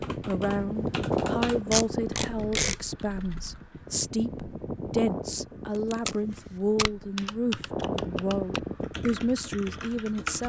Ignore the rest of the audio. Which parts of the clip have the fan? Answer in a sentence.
You can hear the fan from 0.0 to 10.4 s.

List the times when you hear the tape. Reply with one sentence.
The tape can be heard from 1.7 to 2.8 s and from 5.9 to 7.0 s.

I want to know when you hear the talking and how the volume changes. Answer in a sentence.
You can hear the talking from 0.2 to 10.4 s, at a steady volume.